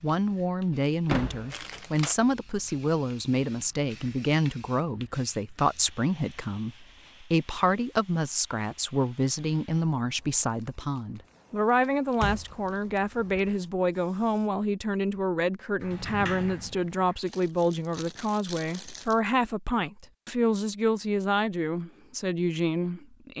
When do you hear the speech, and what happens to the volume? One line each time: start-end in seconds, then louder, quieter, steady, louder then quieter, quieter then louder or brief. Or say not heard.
0.0-23.3 steady.